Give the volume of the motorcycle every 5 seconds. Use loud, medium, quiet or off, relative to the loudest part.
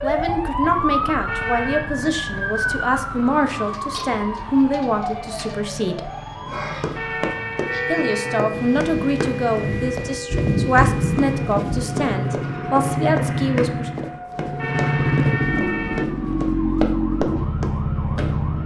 quiet, quiet, loud, loud.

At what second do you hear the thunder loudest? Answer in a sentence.
The volume of the thunder peaks at 11 seconds.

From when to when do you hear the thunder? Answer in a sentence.
You can hear the thunder from 8.5 to 12.1 s.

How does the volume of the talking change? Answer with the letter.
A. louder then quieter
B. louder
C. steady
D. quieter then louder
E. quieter
C.